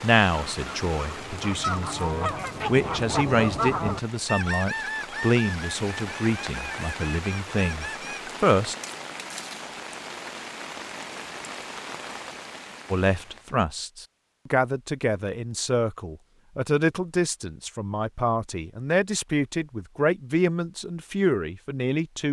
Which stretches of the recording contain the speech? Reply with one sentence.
You can hear the speech from 0.0 to 8.8 s and from 12.9 to 22.2 s.